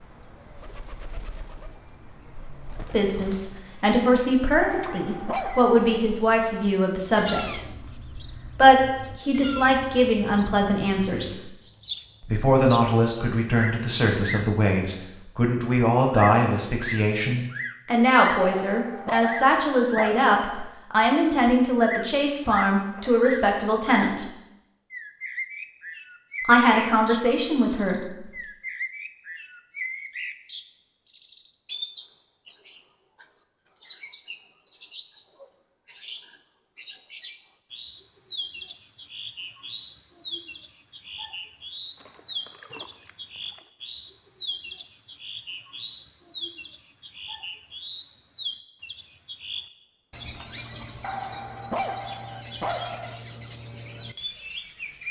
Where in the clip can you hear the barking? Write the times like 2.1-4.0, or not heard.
4.6-5.8, 18.6-20.8, 51.0-53.2.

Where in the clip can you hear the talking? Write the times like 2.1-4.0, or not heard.
2.9-11.5, 12.2-24.2, 26.4-28.2.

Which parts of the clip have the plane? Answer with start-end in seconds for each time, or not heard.
not heard.